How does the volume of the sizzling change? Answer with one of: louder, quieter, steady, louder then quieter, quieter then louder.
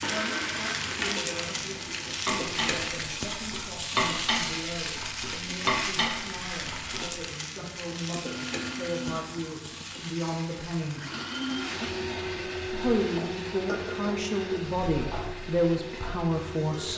quieter.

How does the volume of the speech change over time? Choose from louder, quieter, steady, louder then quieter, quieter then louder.
louder.